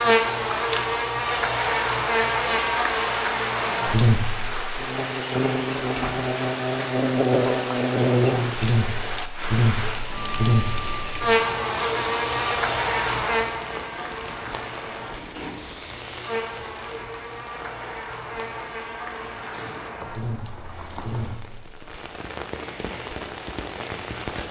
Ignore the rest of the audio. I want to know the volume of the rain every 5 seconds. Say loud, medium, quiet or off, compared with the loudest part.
loud, loud, loud, medium, medium.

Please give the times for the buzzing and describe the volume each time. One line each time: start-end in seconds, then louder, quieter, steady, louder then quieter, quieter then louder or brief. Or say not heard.
0.0-24.4 quieter.